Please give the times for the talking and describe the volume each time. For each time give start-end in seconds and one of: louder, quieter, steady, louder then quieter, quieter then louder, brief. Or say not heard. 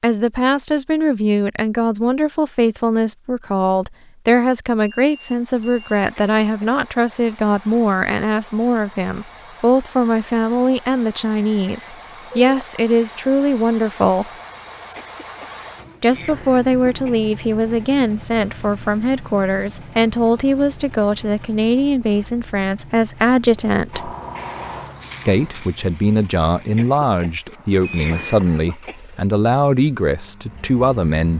0.0-14.3 steady
16.0-24.1 steady
25.2-31.3 steady.